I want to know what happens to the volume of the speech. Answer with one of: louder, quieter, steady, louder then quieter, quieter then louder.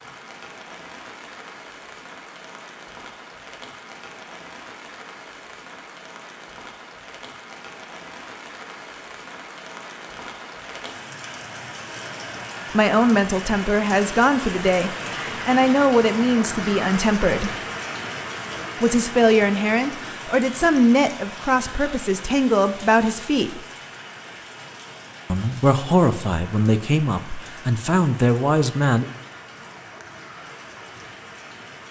steady.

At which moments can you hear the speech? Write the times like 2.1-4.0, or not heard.
12.7-17.6, 18.8-23.6, 25.3-29.1.